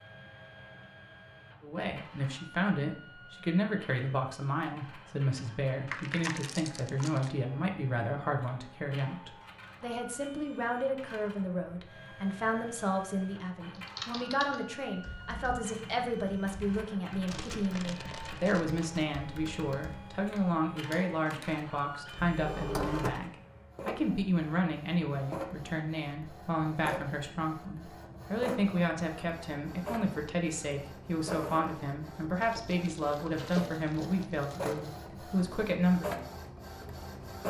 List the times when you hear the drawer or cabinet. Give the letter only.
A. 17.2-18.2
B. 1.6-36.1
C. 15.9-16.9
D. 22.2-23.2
D.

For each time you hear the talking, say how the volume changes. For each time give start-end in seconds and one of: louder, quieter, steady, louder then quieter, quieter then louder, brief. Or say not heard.
1.6-36.1 steady.